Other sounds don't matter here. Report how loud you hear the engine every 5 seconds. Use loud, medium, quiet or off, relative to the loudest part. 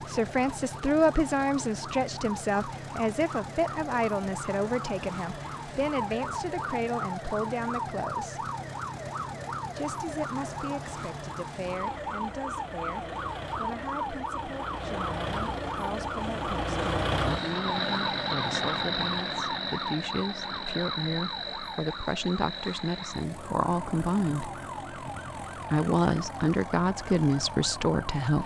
medium, medium, medium, loud, medium, medium.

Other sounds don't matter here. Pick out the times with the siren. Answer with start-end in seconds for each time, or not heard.
0.0-28.4.